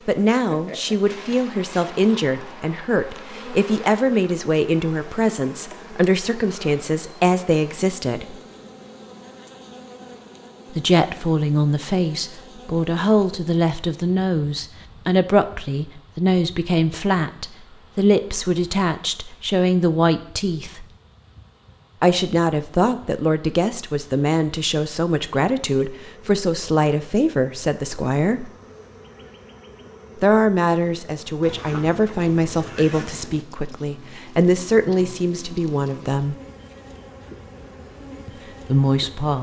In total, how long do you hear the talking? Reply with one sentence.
You can hear the talking for 32 seconds altogether.